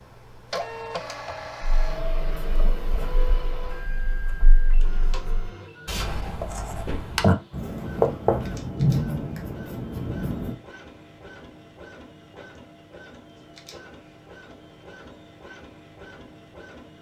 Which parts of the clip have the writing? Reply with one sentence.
The writing can be heard from 1.6 to 10.6 s.